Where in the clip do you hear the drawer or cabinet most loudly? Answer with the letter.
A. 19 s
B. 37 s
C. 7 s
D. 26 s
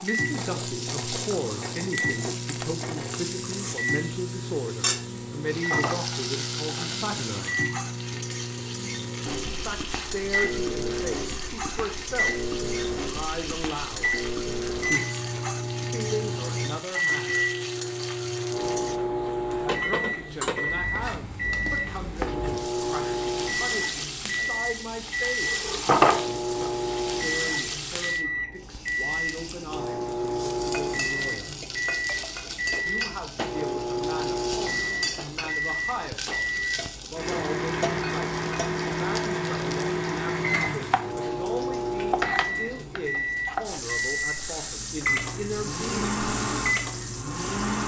D.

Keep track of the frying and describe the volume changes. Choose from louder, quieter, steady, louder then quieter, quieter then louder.
steady.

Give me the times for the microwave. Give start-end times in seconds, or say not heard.
0.0-47.8.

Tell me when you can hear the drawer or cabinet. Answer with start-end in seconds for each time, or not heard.
5.5-6.0, 25.5-26.7.